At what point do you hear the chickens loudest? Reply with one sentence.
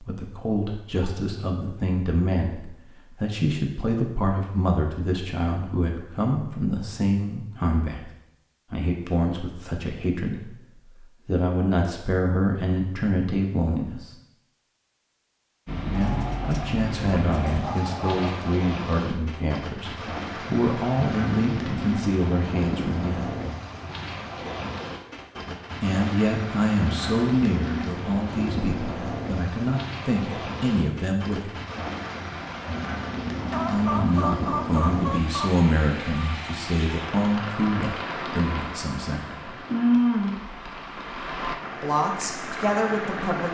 The loudest moment of the chickens is at 34 seconds.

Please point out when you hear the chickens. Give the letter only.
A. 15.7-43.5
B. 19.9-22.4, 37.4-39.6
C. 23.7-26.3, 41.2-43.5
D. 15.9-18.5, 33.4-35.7
D.